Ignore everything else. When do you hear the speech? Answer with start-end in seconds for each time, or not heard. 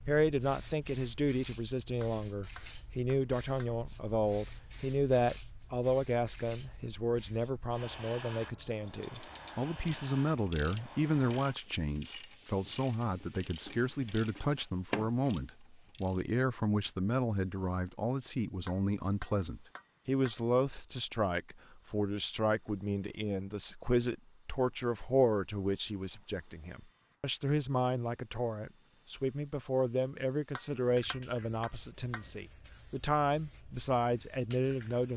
0.1-35.1.